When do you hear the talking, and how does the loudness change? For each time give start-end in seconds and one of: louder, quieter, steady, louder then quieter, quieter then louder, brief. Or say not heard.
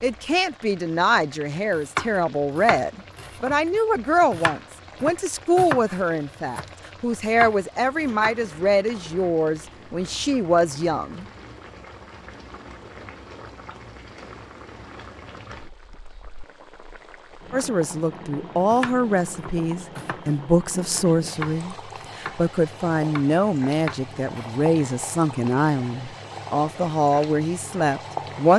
0.0-11.2 steady
17.5-28.5 steady.